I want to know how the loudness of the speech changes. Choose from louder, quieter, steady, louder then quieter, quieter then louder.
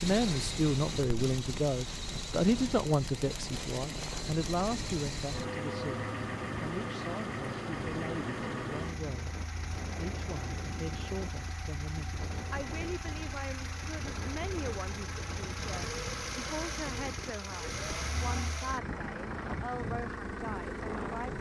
quieter.